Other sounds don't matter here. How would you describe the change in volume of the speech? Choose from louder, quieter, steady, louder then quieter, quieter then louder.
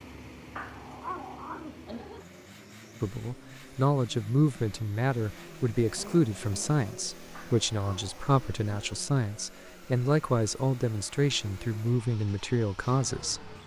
steady.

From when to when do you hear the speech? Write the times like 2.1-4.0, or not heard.
3.0-13.6.